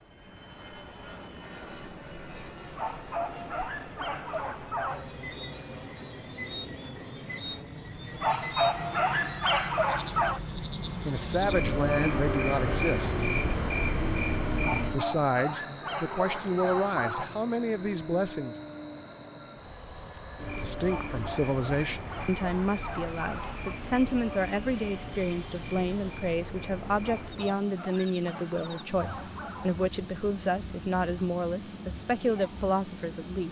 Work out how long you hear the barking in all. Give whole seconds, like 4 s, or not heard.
13 s.